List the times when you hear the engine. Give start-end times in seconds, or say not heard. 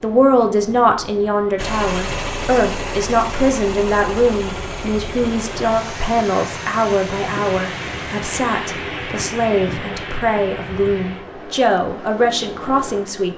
1.6-8.2.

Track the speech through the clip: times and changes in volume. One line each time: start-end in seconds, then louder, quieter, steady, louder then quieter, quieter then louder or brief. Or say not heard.
0.0-13.3 steady.